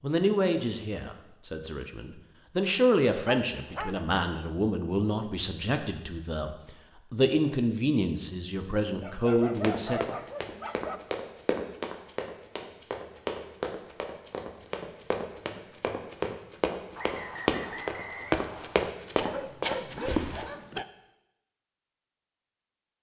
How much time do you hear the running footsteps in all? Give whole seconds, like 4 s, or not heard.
11 s.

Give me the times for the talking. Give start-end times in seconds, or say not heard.
0.0-10.0.